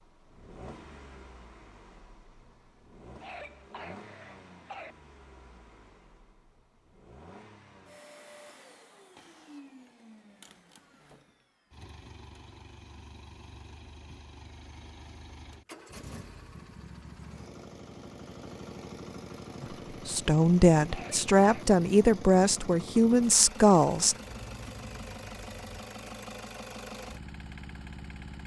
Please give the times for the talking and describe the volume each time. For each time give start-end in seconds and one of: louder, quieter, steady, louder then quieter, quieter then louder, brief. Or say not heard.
19.6-24.1 steady.